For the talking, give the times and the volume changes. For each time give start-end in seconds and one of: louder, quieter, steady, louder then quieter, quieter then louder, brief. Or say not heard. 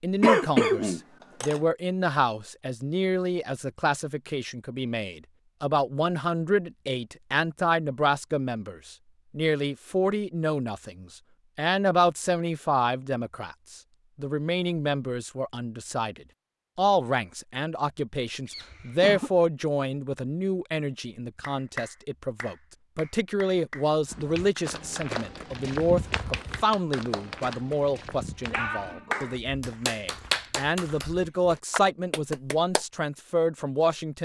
0.0-34.2 steady.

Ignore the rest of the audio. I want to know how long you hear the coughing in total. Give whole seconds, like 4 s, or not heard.
2 s.